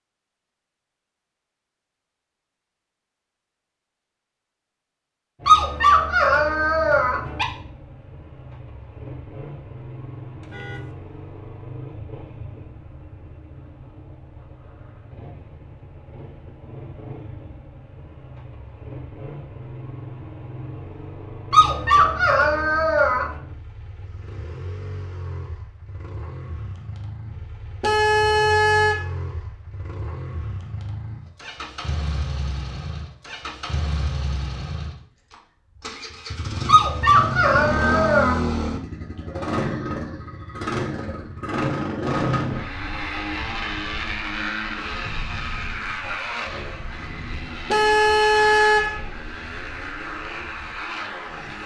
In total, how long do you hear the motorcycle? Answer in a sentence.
The motorcycle can be heard for 46 seconds in total.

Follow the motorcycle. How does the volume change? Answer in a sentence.
The volume of the motorcycle goes up.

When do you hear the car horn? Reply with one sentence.
You can hear the car horn from 10.4 to 10.9 s, from 27.8 to 29.1 s and from 47.7 to 49.0 s.